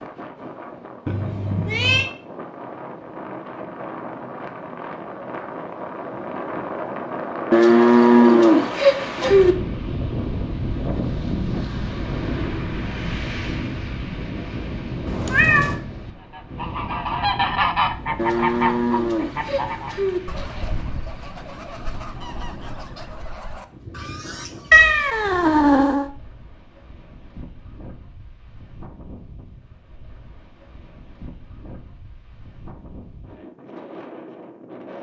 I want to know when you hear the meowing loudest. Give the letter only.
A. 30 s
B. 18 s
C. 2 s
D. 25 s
D.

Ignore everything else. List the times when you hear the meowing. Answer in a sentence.
You can hear the meowing from 1.1 to 2.1 s, from 15.1 to 15.8 s and from 24.7 to 26.1 s.